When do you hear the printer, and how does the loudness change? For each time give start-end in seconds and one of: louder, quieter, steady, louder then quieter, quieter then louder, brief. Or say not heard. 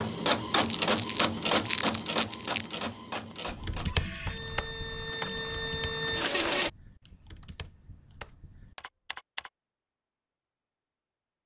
0.0-6.7 quieter then louder.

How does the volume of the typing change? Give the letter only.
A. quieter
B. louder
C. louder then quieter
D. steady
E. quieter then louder
E.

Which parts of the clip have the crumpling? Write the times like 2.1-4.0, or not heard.
0.5-2.6.